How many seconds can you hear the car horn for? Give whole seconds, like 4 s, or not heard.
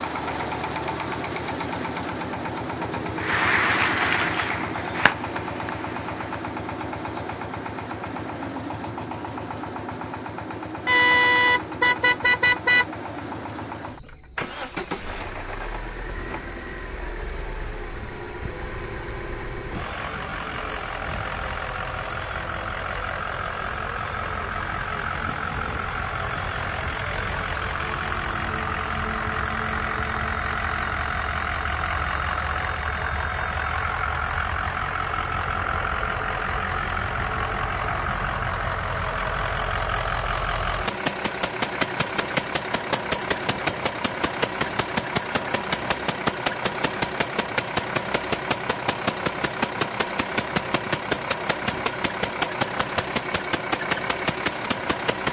2 s.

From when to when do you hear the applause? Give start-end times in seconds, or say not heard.
3.1-6.4.